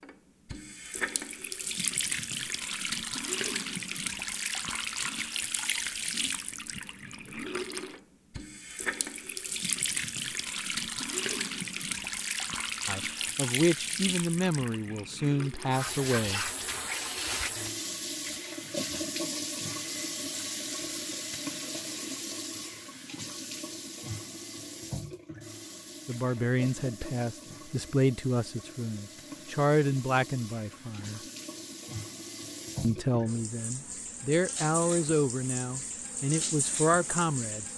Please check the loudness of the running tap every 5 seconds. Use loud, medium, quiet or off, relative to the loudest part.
loud, loud, loud, loud, loud, medium, medium, loud.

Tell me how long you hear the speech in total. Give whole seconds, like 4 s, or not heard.
14 s.